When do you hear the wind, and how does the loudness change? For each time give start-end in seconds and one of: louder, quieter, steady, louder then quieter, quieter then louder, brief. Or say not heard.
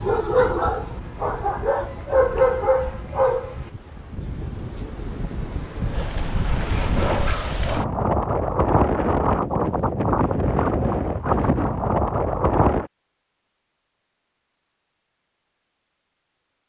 0.0-12.9 louder.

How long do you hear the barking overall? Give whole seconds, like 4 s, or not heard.
4 s.